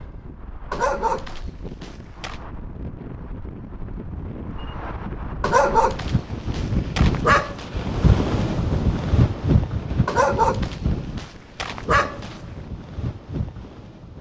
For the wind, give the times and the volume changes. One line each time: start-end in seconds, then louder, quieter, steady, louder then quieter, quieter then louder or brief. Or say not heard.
0.0-14.1 louder then quieter.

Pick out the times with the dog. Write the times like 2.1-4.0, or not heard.
0.7-2.4, 5.4-7.7, 10.1-12.3.